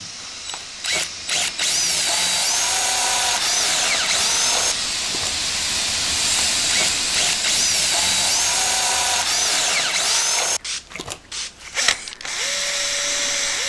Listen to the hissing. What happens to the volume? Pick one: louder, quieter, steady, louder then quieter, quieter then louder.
louder then quieter.